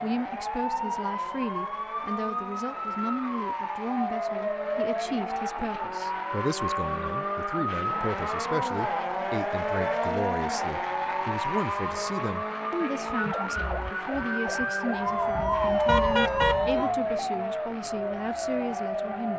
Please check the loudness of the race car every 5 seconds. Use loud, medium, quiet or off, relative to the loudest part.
medium, loud, loud, medium.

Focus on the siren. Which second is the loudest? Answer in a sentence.
The loudest moment of the siren is at 16 seconds.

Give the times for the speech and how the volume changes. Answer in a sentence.
You can hear the speech from 0.0 to 19.3 s, at a steady volume.